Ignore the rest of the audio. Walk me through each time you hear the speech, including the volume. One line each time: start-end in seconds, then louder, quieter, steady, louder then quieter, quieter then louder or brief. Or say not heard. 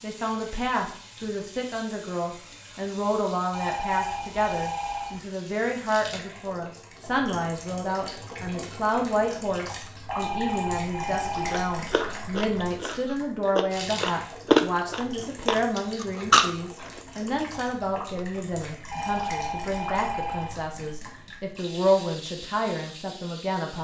0.0-23.8 steady.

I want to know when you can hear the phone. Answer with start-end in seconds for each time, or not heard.
3.5-5.2, 10.1-11.8, 18.9-20.6.